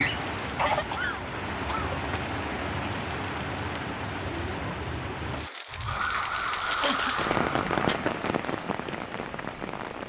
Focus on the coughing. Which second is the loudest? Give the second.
1 s.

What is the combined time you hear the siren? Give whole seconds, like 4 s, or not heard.
2 s.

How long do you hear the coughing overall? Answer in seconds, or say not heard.
3 s.